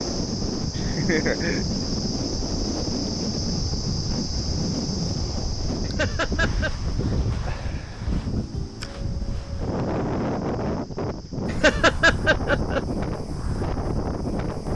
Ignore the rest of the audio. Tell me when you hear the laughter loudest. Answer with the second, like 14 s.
12 s.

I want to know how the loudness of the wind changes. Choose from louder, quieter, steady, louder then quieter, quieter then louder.
steady.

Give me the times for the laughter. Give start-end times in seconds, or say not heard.
0.8-1.8, 5.8-6.7, 11.4-12.8.